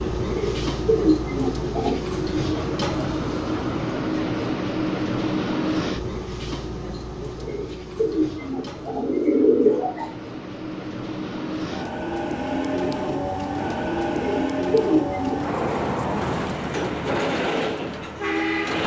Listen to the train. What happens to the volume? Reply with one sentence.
The loudness of the train goes down, then up.